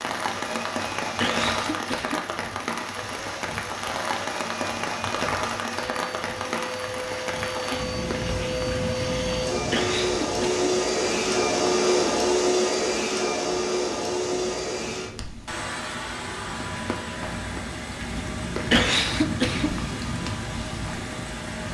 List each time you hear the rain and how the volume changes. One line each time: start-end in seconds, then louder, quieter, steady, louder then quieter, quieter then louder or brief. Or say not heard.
0.0-21.6 quieter then louder.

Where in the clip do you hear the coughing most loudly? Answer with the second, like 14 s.
19 s.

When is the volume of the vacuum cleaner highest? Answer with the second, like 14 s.
12 s.